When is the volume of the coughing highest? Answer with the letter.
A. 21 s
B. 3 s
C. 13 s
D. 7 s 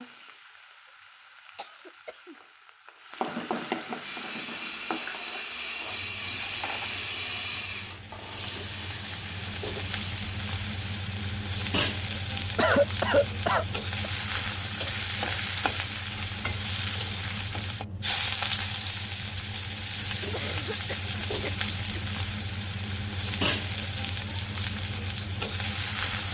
C.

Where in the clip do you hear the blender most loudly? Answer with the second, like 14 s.
7 s.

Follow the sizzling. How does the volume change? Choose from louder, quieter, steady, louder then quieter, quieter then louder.
louder.